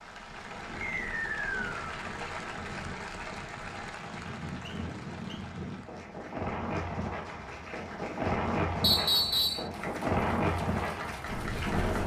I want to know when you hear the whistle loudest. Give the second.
9 s.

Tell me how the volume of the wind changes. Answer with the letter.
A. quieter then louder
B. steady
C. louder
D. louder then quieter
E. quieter
C.